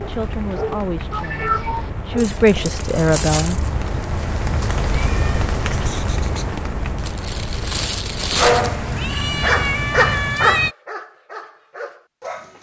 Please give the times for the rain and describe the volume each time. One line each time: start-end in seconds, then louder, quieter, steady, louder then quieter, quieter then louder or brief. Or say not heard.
0.0-10.1 louder then quieter.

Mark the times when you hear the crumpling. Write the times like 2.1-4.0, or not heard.
2.1-3.7, 7.0-8.7.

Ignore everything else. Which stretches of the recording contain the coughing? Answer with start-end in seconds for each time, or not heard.
not heard.